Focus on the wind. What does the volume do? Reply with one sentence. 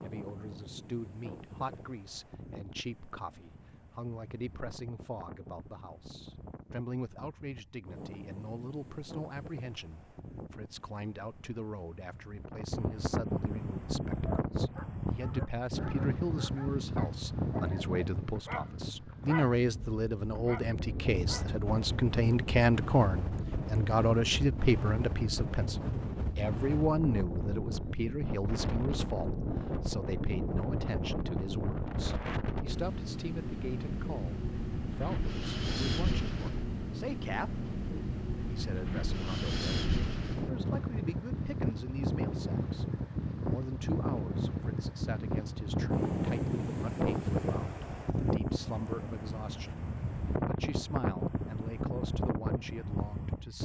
The loudness of the wind goes up.